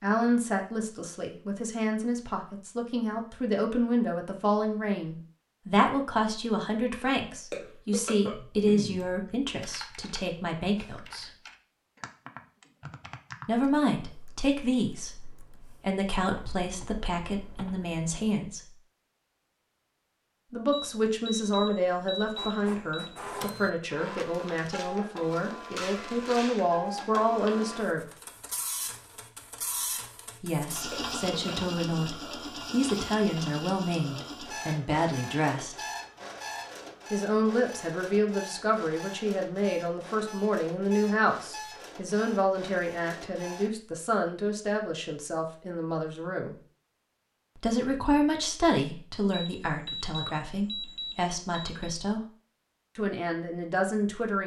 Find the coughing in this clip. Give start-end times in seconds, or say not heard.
7.5-8.9, 30.9-31.7.